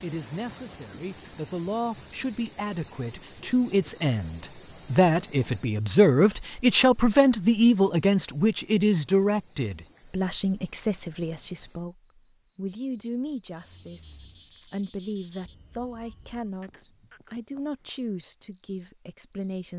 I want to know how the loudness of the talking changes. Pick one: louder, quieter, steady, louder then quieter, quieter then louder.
louder then quieter.